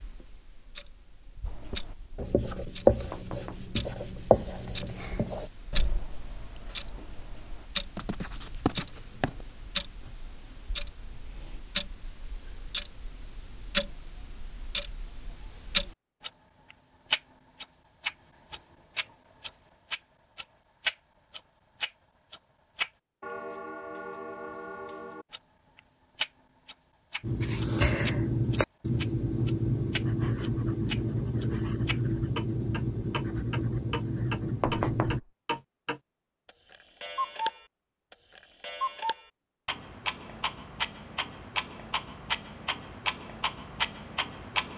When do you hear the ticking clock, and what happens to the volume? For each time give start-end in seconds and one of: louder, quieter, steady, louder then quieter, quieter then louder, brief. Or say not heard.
0.0-44.7 louder.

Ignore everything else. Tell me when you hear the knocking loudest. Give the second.
35 s.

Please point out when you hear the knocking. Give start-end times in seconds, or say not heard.
3.1-3.8, 34.6-35.2.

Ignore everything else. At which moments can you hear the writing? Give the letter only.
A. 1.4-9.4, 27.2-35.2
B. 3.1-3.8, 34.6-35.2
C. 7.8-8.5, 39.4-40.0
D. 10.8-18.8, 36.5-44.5
A.